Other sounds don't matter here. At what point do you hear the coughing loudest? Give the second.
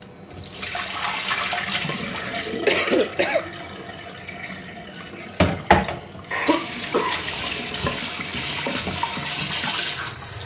3 s.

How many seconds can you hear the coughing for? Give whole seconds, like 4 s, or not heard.
3 s.